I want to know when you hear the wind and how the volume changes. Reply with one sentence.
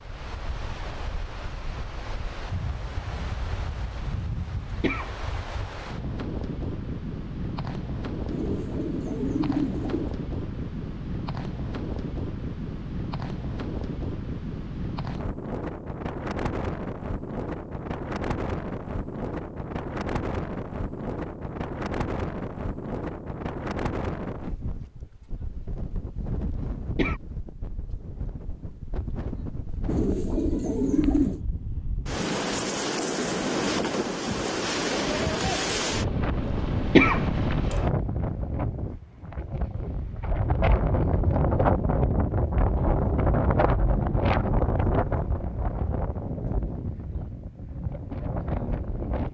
The wind can be heard from 0.0 to 49.2 s, getting louder.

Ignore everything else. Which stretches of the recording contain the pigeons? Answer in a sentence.
The pigeons can be heard from 8.3 to 10.2 s and from 29.9 to 31.4 s.